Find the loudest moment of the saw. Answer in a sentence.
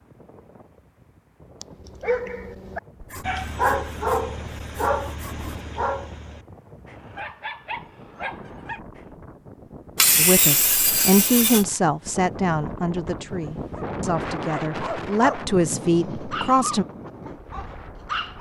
The volume of the saw peaks at 10 seconds.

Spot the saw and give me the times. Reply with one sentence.
You can hear the saw from 3.0 to 5.5 s and from 9.9 to 11.7 s.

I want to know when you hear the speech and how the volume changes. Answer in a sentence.
You can hear the speech from 10.2 to 16.9 s, getting quieter then louder.